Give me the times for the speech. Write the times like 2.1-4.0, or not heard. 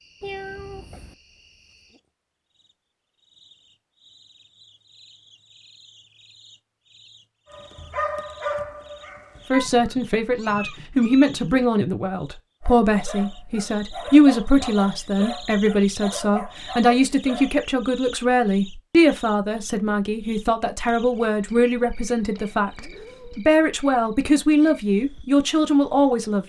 9.5-26.4.